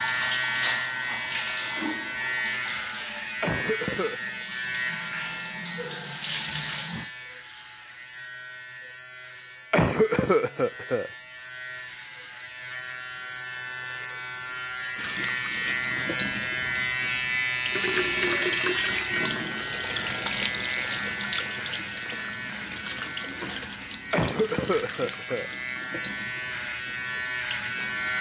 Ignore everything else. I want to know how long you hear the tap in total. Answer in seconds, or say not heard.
20 s.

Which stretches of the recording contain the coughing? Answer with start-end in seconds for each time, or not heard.
3.4-4.2, 9.7-11.1, 24.1-25.5.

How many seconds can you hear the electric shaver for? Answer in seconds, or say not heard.
28 s.